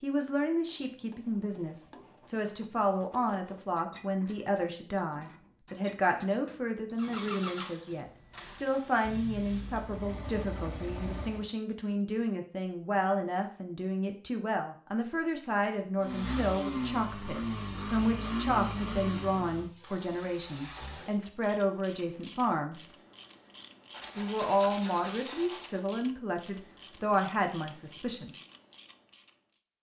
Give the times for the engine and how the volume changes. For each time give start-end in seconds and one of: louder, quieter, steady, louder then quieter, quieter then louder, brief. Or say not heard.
7.0-11.5 quieter then louder
16.0-21.1 quieter.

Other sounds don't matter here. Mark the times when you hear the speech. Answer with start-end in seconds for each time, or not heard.
0.0-22.9, 24.1-28.3.